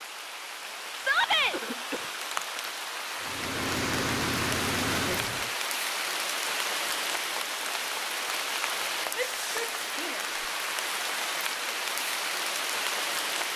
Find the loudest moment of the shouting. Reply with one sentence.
The volume of the shouting peaks at 1 second.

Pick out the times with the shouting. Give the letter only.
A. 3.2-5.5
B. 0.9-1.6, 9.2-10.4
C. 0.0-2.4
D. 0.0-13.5
B.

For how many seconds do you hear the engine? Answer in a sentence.
The engine can be heard for 2 seconds in total.